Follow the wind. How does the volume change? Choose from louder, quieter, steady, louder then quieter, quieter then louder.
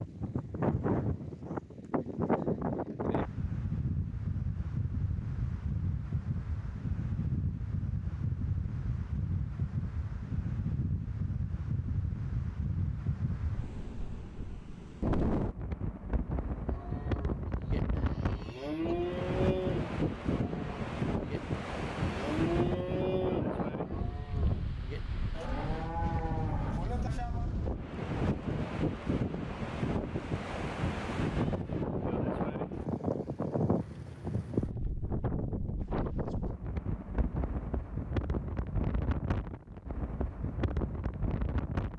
steady.